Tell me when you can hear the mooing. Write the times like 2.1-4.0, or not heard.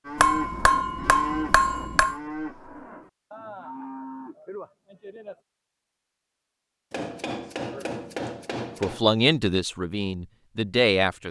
0.1-5.4.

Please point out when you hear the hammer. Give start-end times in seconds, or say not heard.
0.1-2.1, 6.9-9.1.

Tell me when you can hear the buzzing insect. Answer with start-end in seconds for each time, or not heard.
not heard.